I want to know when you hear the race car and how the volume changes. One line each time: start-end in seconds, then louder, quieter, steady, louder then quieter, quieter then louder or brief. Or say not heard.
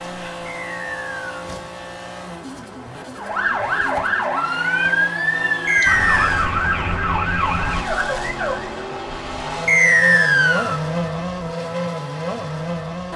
0.0-13.1 louder.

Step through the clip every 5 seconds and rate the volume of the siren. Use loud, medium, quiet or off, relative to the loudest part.
loud, loud, off.